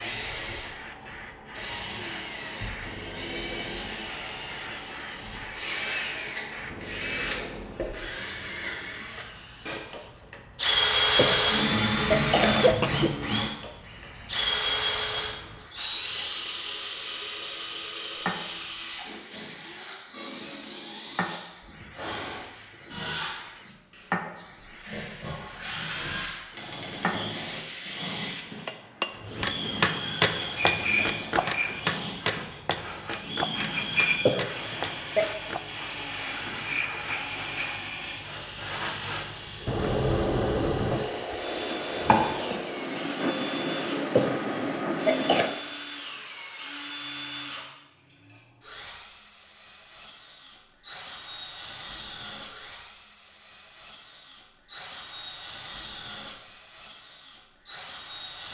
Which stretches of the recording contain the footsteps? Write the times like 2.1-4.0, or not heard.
not heard.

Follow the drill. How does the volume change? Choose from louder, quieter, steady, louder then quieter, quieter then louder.
quieter.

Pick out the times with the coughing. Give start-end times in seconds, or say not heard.
11.2-13.2, 34.2-35.2, 44.1-45.5.